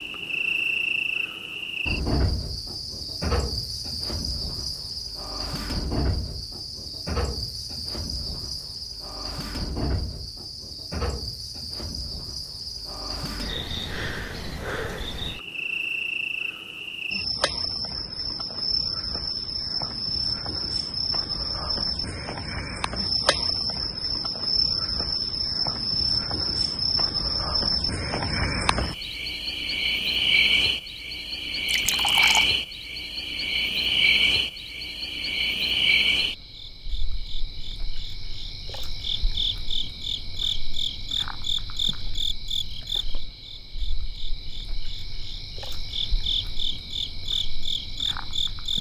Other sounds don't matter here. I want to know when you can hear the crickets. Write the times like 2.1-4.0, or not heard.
0.0-48.7.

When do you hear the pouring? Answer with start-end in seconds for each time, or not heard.
31.6-32.5.